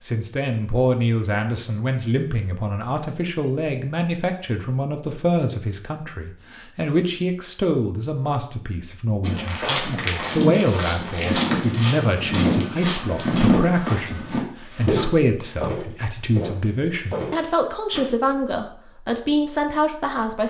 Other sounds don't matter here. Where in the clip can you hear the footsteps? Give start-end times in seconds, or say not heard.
9.2-18.0.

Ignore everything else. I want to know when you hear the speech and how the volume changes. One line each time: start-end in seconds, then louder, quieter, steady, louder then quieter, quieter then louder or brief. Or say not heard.
0.0-20.4 steady.